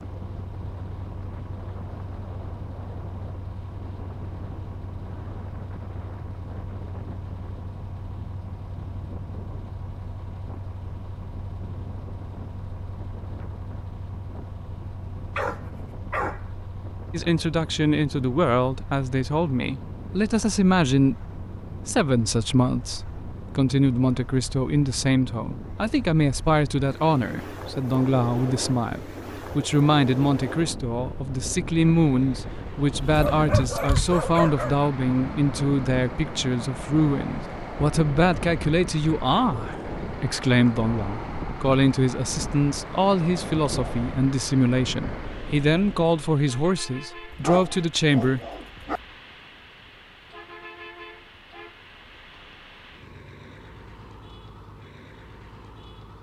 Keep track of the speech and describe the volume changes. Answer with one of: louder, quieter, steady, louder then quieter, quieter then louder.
steady.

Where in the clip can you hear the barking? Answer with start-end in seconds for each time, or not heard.
15.3-16.4, 33.3-34.9, 47.3-49.0.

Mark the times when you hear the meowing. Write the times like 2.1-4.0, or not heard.
33.0-34.2.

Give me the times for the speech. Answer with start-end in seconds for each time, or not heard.
17.1-48.4.